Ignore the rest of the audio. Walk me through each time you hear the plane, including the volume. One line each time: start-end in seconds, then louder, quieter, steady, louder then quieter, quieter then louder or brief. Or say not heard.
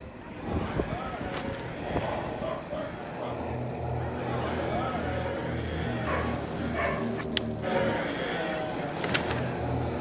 0.0-9.9 steady.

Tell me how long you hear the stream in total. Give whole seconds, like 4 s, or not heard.
not heard.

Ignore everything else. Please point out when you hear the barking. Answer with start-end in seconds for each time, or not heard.
1.9-3.5, 6.0-7.2.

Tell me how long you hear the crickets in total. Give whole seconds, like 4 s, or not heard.
10 s.